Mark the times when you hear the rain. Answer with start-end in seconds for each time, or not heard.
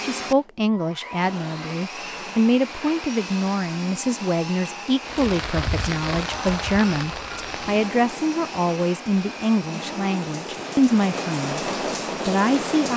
5.0-12.9.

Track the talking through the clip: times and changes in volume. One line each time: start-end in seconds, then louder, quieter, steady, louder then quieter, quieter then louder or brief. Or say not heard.
0.0-11.6 steady
12.2-12.9 brief.